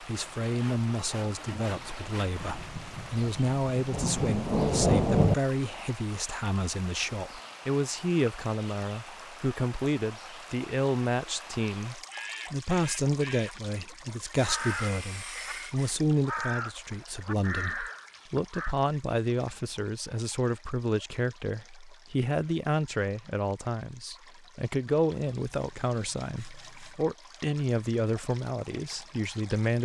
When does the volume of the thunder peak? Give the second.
5 s.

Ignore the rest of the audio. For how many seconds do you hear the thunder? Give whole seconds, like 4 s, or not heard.
3 s.